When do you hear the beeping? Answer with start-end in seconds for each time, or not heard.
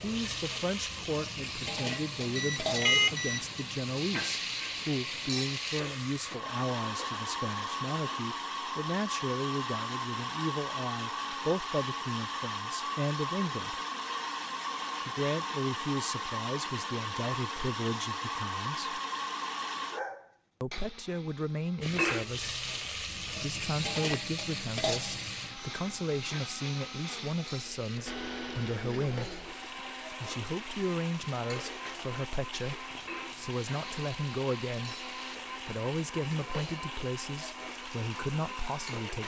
2.4-3.6.